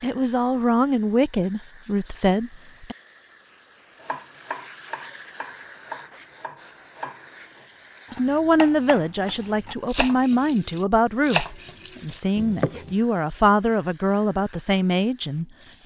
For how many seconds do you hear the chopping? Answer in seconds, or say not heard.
9 s.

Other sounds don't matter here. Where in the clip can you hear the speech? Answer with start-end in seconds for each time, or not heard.
0.0-3.0, 8.1-15.8.